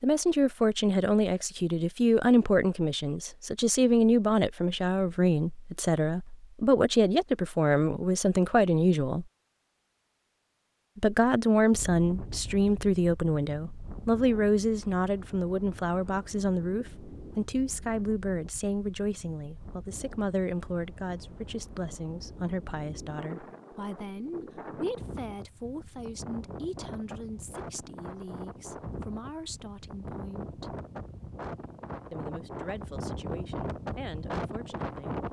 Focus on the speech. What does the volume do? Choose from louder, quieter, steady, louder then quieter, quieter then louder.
quieter.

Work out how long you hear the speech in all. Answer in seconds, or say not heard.
32 s.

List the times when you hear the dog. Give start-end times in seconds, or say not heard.
not heard.